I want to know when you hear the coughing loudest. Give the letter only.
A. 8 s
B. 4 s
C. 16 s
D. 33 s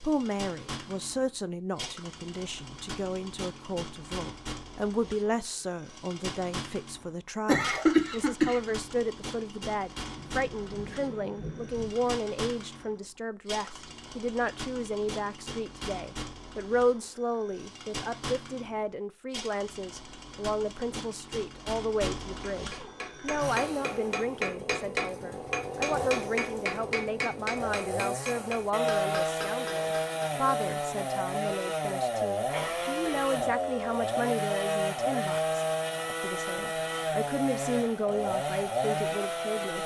A.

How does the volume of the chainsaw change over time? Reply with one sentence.
The loudness of the chainsaw goes up.